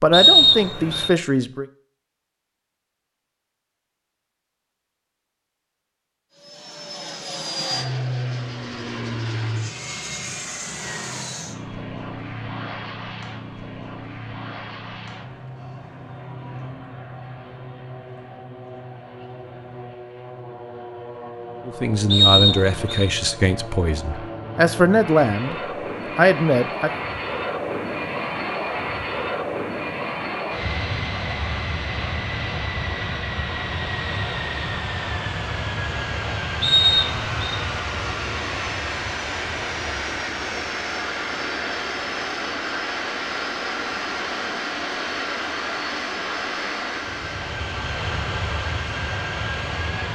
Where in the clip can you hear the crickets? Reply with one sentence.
You can't hear the crickets here.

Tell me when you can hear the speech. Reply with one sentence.
The speech can be heard from 0.0 to 1.6 s, from 21.6 to 25.6 s and from 26.1 to 26.9 s.